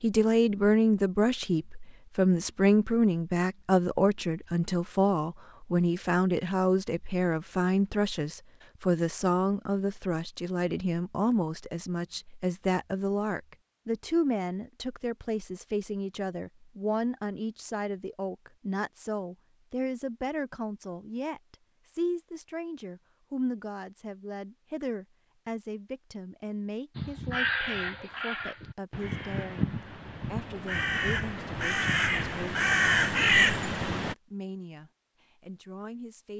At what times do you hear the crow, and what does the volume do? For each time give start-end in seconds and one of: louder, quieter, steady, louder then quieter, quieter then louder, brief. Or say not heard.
26.9-34.1 louder.